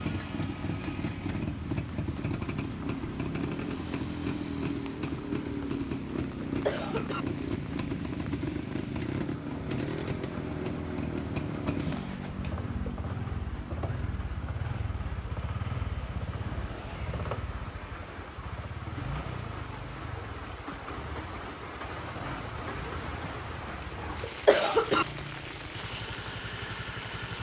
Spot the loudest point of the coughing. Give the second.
25 s.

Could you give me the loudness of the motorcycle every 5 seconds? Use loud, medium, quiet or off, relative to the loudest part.
loud, loud, loud, medium, quiet, medium.